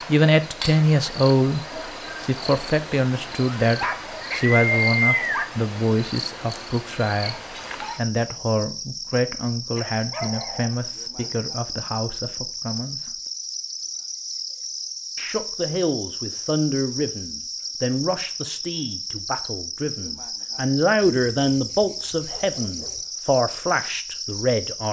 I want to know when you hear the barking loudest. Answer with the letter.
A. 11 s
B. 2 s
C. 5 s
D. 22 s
C.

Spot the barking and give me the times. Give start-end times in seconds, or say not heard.
3.6-5.5, 9.8-11.3, 21.0-23.1.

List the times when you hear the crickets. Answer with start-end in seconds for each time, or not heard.
0.0-24.8.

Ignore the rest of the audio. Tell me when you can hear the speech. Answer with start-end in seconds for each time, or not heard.
0.1-13.2, 15.2-24.8.